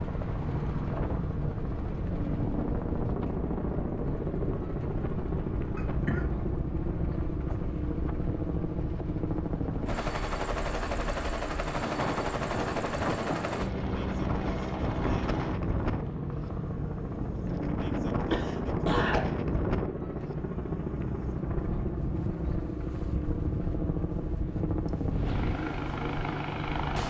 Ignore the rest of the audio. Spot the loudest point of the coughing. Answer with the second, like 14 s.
19 s.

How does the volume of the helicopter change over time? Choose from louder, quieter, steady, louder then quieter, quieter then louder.
steady.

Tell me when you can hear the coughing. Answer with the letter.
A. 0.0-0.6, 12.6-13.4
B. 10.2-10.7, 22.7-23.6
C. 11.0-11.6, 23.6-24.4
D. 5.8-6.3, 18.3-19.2
D.